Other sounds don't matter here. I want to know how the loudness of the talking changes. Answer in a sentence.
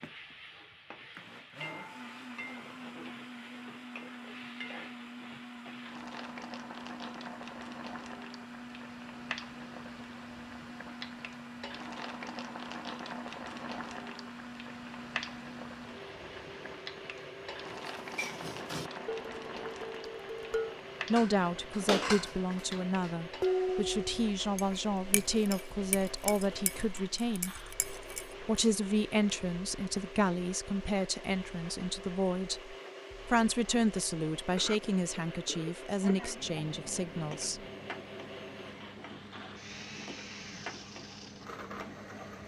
The volume of the talking stays about the same.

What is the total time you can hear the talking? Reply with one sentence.
The talking can be heard for 16 seconds in total.